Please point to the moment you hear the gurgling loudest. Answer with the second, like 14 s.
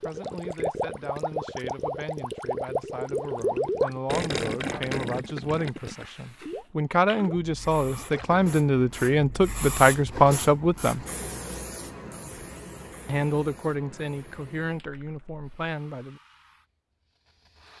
4 s.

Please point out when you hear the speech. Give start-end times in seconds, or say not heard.
0.0-11.1, 13.1-16.2.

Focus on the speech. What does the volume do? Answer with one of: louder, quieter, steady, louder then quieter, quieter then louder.
louder then quieter.